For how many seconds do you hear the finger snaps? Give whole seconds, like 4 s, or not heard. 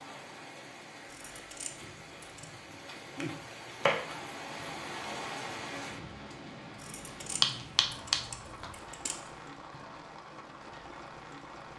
2 s.